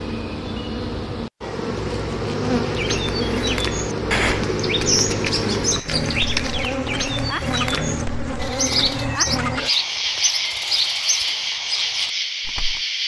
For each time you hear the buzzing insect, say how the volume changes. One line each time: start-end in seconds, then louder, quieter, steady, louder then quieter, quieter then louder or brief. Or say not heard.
0.0-13.0 steady.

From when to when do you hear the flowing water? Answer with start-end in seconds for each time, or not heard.
not heard.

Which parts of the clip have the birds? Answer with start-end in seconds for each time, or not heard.
2.6-12.8.